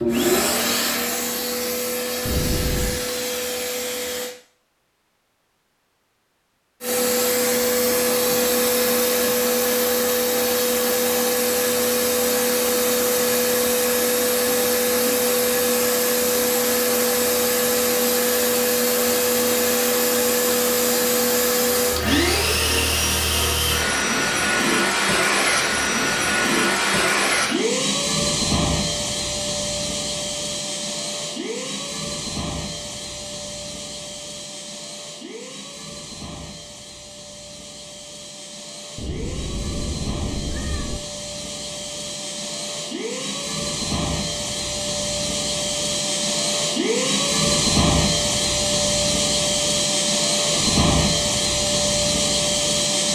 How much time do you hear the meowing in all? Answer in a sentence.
The meowing can be heard for 3 seconds in total.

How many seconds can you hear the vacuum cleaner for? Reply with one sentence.
You can hear the vacuum cleaner for 51 seconds altogether.